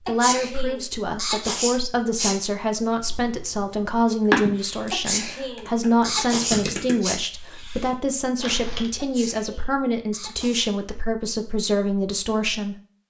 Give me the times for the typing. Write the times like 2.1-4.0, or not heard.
3.0-8.9.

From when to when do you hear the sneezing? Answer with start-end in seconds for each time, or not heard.
0.1-2.4, 4.9-7.2, 8.9-10.7.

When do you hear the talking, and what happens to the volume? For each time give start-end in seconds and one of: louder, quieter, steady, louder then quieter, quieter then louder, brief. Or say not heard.
0.1-12.8 steady.